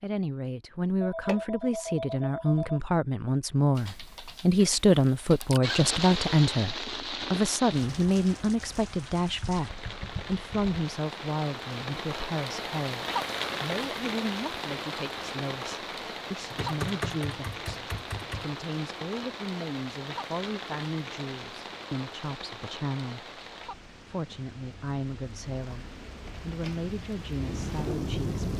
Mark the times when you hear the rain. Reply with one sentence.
You can hear the rain from 5.6 to 28.5 s.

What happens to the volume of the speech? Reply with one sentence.
The loudness of the speech goes down.